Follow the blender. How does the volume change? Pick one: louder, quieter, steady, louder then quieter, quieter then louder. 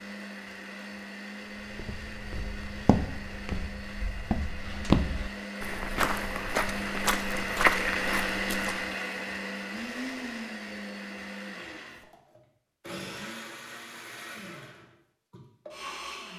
louder then quieter.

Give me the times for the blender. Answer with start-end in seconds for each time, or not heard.
0.0-16.3.